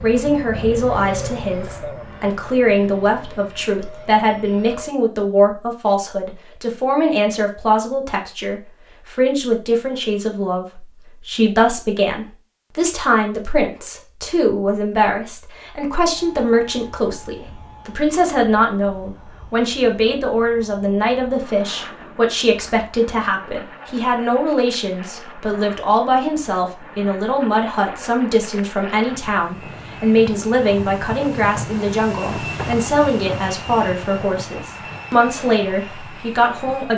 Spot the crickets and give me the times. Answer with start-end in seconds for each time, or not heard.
not heard.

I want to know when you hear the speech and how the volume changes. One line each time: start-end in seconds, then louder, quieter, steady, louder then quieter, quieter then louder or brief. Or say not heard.
0.0-36.9 steady.